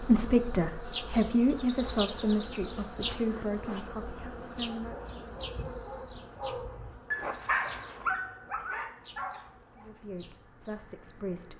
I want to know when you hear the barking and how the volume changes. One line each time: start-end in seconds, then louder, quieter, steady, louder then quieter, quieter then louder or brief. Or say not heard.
4.8-10.1 louder then quieter.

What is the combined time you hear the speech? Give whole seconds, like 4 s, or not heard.
7 s.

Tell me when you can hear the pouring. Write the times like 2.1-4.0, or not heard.
not heard.